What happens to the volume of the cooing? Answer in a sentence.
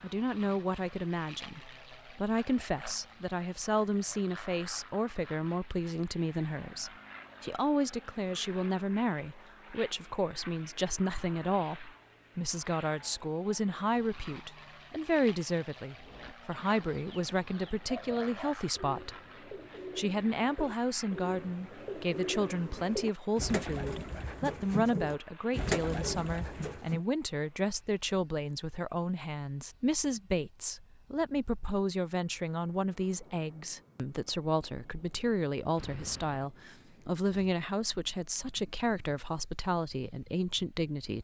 The loudness of the cooing goes up.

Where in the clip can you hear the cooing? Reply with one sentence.
You can hear the cooing from 15.9 to 27.0 s.